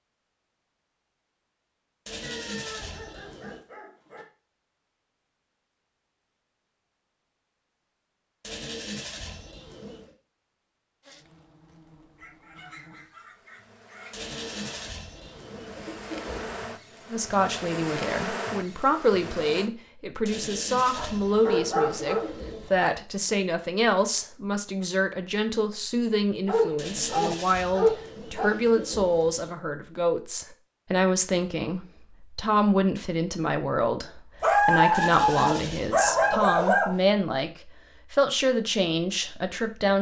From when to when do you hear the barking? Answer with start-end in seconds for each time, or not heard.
2.2-4.2, 12.2-14.2, 20.9-22.3, 26.4-28.4, 34.4-36.9.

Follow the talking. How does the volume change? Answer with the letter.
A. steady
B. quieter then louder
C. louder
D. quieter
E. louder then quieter
A.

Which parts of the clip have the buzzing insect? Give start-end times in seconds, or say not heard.
11.0-19.7.